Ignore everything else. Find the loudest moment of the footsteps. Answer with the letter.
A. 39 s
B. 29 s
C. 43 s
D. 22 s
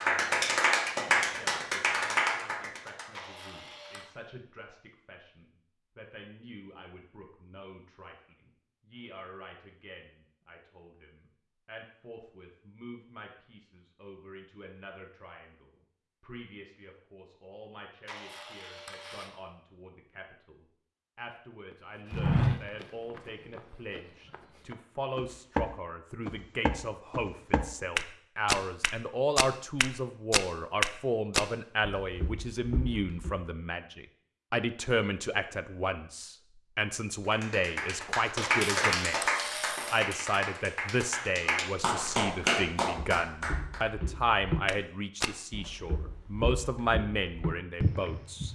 D.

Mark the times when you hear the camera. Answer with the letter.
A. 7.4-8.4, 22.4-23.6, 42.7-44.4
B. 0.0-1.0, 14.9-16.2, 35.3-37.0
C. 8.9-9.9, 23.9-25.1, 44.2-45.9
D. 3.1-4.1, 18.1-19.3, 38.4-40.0
D.